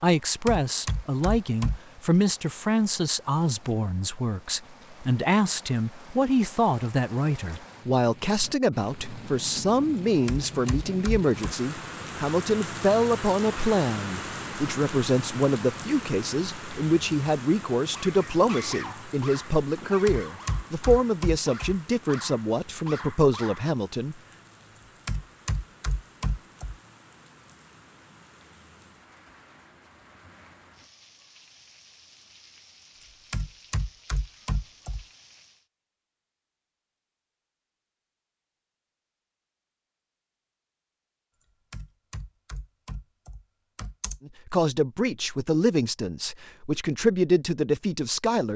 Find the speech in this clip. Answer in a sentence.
You can hear the speech from 0.0 to 24.1 s and from 44.2 to 48.5 s.